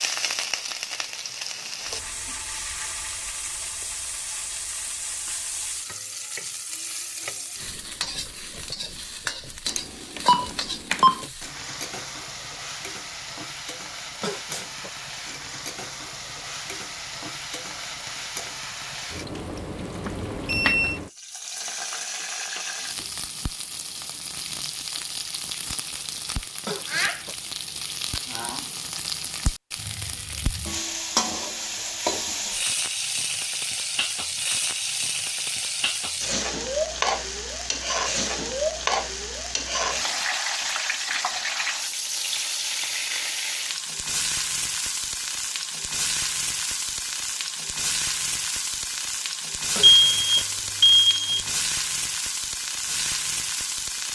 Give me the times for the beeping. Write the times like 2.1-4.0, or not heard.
9.7-11.2, 20.1-21.0, 49.8-51.5.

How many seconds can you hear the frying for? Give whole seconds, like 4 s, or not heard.
54 s.